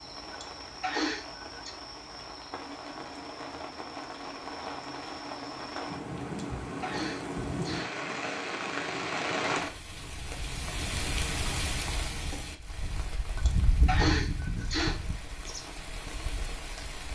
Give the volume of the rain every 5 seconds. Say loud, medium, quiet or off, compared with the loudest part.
medium, loud, loud, medium.